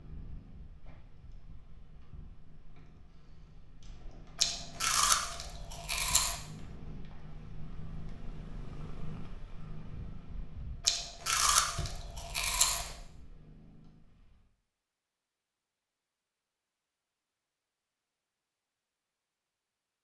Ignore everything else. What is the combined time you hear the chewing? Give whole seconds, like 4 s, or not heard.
4 s.